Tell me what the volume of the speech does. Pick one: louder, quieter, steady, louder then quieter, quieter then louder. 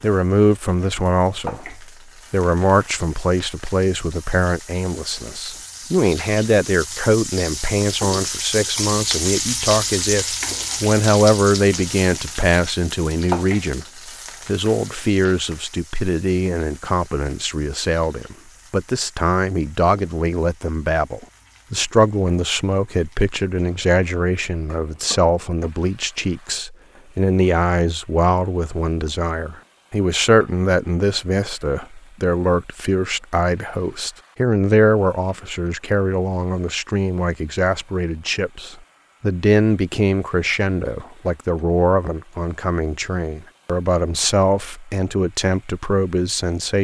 steady.